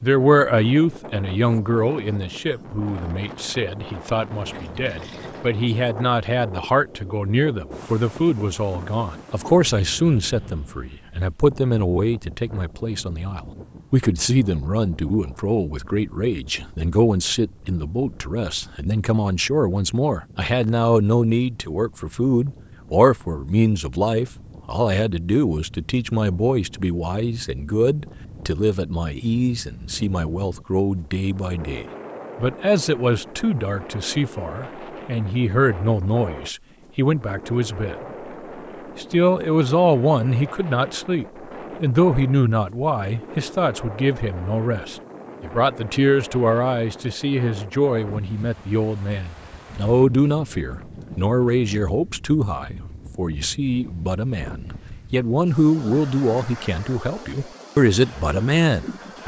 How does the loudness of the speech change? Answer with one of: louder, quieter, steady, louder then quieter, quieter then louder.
steady.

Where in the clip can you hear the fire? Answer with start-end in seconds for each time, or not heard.
not heard.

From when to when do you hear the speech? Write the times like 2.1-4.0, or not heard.
0.0-38.0, 39.0-59.2.